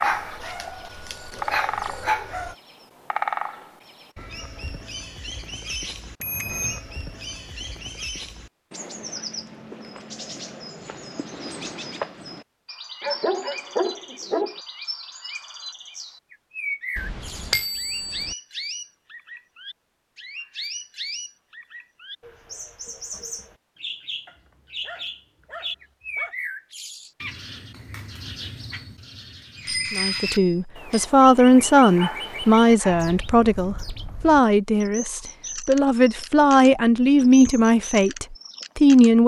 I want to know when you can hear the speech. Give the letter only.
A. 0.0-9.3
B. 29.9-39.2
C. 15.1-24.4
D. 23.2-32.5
B.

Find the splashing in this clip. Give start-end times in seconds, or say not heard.
not heard.